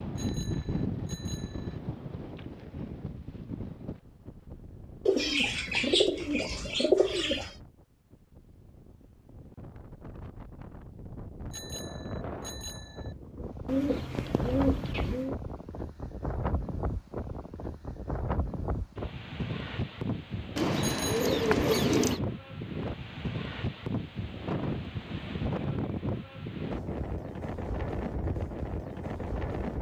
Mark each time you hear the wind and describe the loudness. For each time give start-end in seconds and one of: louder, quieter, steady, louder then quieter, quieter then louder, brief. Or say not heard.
0.0-29.7 quieter then louder.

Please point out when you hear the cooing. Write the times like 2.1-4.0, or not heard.
5.0-7.5, 13.7-15.3, 20.6-22.2.